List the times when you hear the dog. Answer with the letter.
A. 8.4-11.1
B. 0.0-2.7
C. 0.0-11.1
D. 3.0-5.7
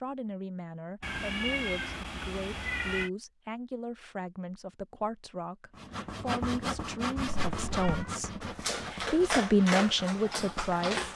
A.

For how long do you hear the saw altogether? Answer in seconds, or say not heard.
5 s.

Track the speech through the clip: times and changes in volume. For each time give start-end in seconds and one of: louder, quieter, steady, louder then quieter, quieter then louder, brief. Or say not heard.
0.0-11.1 louder.